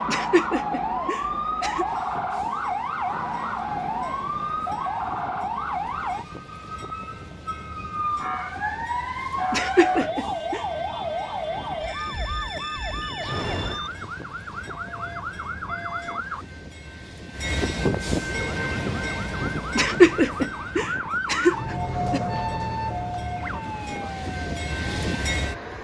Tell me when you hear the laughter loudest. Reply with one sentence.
The loudest moment of the laughter is at 20 seconds.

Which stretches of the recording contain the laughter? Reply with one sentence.
You can hear the laughter from 0.1 to 1.9 s, from 9.5 to 10.6 s and from 19.8 to 22.2 s.